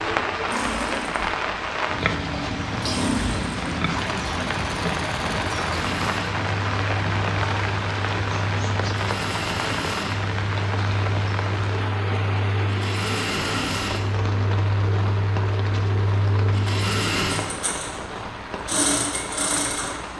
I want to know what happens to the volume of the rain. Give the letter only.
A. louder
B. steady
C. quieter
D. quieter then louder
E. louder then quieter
C.